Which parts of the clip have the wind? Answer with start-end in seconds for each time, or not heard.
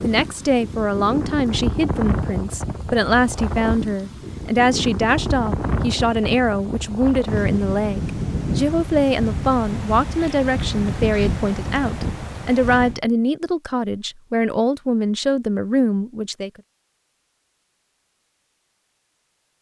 0.0-13.0.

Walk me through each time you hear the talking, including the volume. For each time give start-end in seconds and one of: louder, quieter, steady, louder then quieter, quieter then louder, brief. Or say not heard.
0.0-16.5 steady.